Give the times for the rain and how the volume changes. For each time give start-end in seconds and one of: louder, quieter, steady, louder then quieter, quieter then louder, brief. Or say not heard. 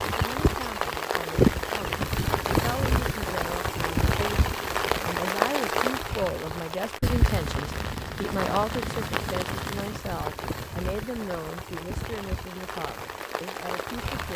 0.0-14.3 quieter.